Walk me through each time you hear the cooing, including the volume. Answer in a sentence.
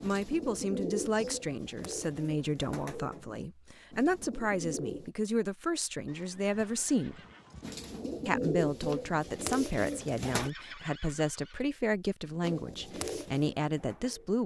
The cooing can be heard from 0.0 to 5.1 s, getting quieter; briefly from 7.6 to 10.5 s; and briefly from 12.4 to 14.4 s.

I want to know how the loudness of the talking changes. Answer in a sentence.
The volume of the talking stays about the same.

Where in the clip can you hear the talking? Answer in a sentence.
You can hear the talking from 0.0 to 7.2 s and from 8.2 to 14.4 s.